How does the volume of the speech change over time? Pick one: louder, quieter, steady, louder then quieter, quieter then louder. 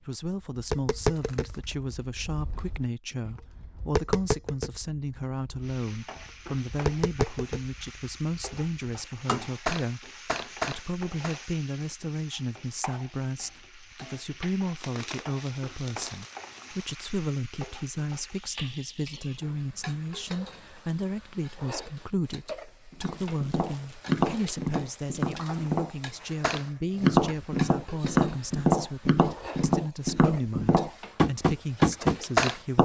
steady.